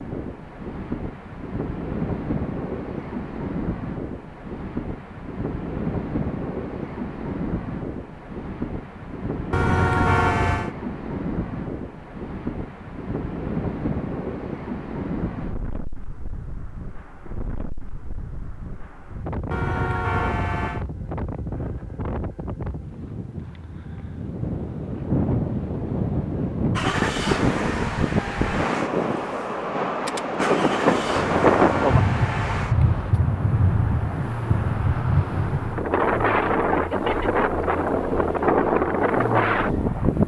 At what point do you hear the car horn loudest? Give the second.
10 s.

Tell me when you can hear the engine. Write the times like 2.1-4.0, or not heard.
26.8-40.2.